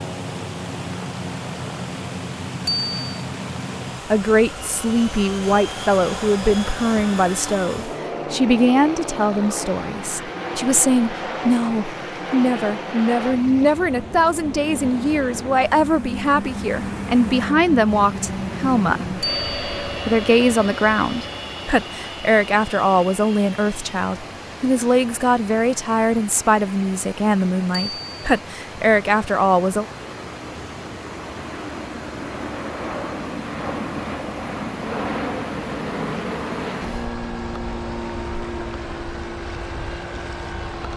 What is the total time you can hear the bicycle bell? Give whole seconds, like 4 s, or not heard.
2 s.